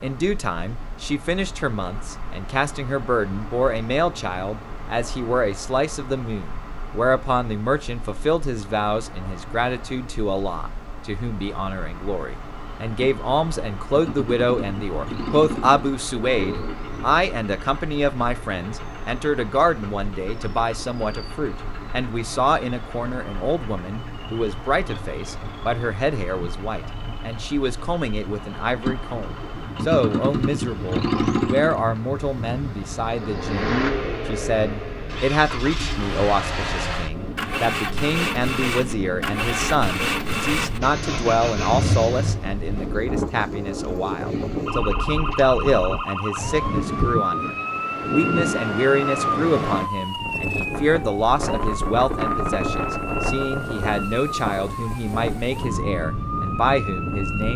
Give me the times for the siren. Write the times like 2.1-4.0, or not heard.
44.6-57.5.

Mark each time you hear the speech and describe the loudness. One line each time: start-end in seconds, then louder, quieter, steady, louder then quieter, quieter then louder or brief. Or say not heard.
0.0-57.5 steady.